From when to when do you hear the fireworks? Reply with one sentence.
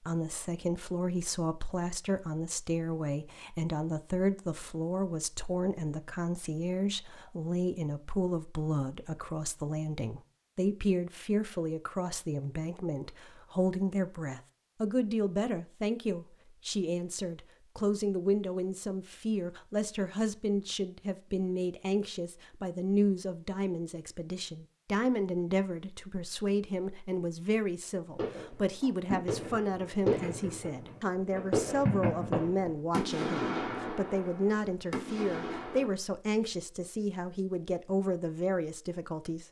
The fireworks can be heard from 28.1 to 35.9 s.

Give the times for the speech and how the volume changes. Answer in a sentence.
The speech can be heard from 0.0 to 39.4 s, at a steady volume.